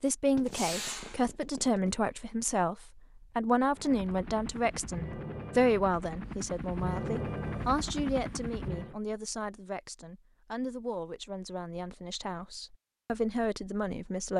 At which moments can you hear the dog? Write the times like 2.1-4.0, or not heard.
not heard.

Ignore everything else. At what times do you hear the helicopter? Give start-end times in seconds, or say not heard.
3.7-9.0.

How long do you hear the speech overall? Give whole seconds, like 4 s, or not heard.
14 s.